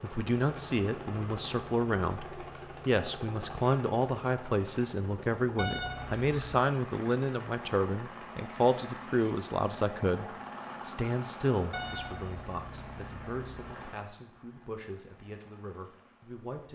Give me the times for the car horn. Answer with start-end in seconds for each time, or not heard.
5.5-6.6, 11.7-13.8.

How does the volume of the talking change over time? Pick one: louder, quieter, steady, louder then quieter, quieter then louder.
quieter.